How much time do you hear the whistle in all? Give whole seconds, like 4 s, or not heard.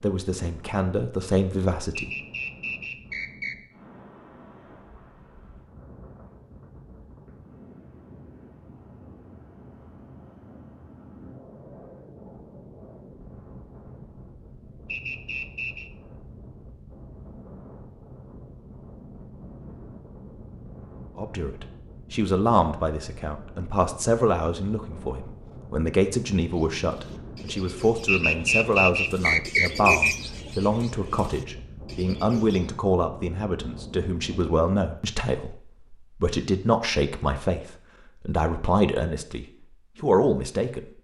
5 s.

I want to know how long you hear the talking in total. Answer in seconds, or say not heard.
22 s.